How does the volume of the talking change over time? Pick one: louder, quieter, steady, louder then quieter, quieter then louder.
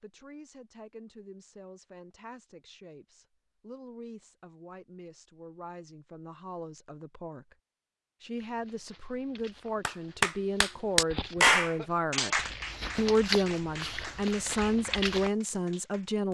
louder.